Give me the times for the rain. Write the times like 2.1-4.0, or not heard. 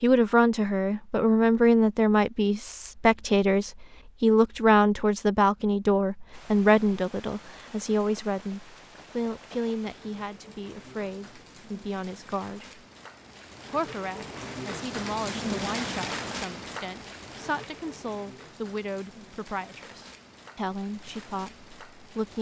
6.3-22.3.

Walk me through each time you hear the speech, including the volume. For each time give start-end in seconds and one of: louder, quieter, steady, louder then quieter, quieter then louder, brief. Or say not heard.
0.0-12.8 quieter
13.7-22.3 steady.